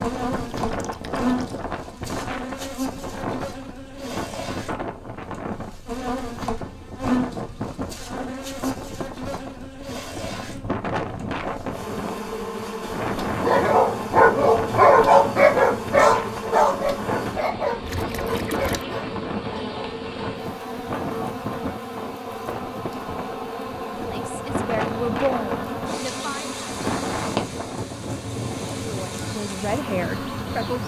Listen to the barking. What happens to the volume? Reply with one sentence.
The loudness of the barking goes down.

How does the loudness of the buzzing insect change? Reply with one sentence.
The volume of the buzzing insect stays about the same.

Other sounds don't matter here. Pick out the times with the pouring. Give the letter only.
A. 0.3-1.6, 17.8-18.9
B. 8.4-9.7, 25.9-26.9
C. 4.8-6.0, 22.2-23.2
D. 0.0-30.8
A.